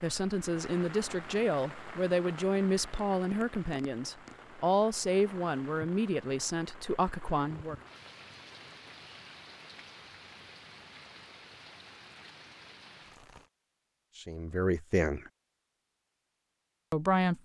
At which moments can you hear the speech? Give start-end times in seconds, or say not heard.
0.0-7.8, 14.2-15.3, 16.9-17.4.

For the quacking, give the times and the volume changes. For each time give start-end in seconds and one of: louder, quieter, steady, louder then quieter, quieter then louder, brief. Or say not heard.
not heard.